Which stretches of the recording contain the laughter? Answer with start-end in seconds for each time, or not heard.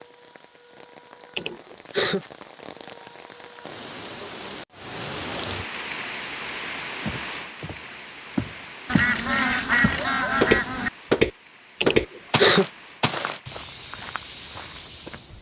1.4-2.2, 11.8-12.7.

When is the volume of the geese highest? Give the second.
10 s.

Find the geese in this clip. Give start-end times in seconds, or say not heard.
8.8-10.9.